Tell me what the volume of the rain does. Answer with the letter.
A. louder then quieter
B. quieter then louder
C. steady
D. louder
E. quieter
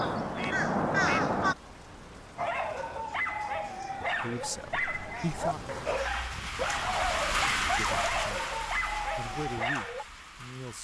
A.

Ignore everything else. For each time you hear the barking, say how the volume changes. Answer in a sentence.
The barking can be heard from 2.4 to 10.1 s, at a steady volume.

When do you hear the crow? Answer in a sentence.
You can hear the crow from 0.0 to 1.6 s.